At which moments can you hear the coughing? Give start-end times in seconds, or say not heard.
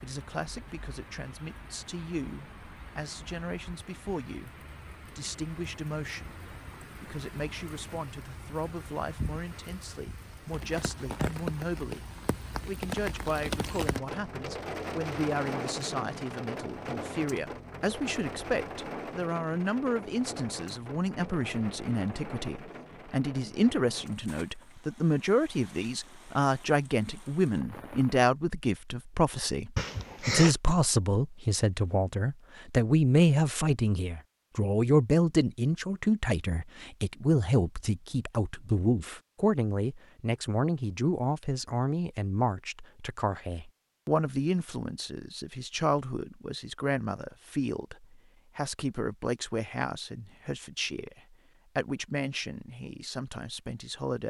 29.8-30.6.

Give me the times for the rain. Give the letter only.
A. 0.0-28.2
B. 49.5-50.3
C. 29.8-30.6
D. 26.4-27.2
A.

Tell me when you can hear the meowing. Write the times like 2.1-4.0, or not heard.
not heard.